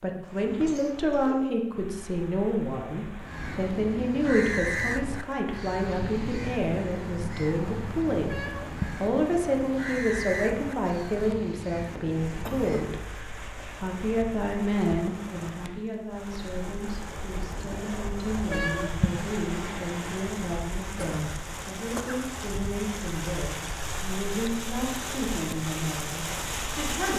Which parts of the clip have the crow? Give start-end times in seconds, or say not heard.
3.2-13.0.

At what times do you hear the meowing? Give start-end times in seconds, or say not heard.
8.2-9.1, 18.4-19.2.